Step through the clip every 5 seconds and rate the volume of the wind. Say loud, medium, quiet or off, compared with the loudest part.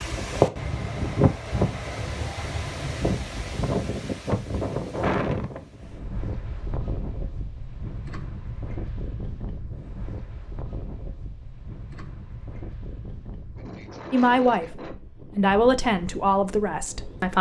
loud, medium, quiet, quiet.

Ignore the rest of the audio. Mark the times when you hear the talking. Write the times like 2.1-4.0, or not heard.
14.1-17.3.